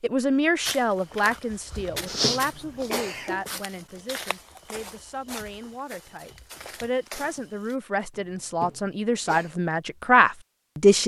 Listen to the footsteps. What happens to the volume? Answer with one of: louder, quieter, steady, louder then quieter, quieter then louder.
quieter.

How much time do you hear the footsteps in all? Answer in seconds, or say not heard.
7 s.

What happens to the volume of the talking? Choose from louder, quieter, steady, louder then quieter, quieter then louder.
quieter then louder.